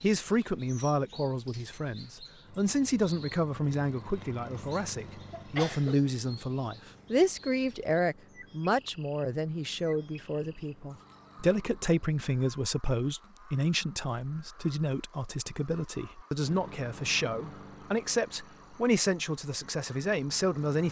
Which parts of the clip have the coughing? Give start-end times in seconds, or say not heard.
5.3-6.0.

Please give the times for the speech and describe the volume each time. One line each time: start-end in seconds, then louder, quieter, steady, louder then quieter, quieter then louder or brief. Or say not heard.
0.0-20.8 steady.